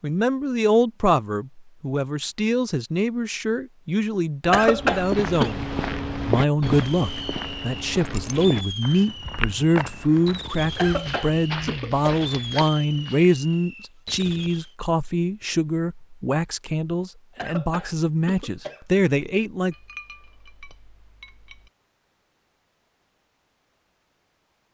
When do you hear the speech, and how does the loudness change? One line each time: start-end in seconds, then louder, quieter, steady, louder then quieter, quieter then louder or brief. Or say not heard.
0.0-19.8 steady.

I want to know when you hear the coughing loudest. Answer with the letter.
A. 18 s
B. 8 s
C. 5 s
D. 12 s
C.